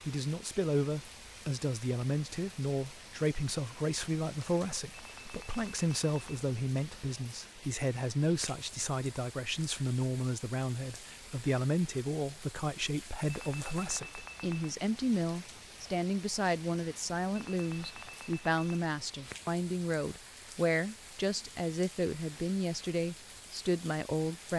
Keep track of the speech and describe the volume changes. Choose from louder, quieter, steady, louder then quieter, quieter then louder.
steady.